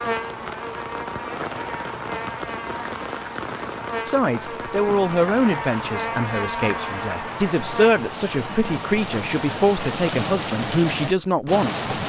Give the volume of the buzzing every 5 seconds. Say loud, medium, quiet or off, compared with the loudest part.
loud, loud, off.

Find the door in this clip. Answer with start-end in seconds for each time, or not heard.
not heard.